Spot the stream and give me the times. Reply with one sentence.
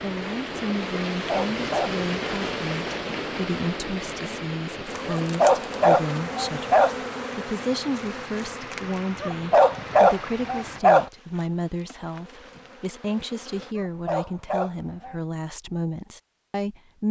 You can hear the stream from 0.0 to 10.8 s.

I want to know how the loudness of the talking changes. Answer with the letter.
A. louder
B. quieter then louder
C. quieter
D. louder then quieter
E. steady
E.